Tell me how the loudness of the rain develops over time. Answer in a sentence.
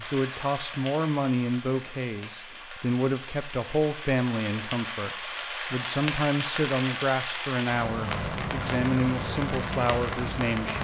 The loudness of the rain goes up.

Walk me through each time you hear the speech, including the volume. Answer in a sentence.
The speech can be heard from 0.0 to 10.7 s, at a steady volume.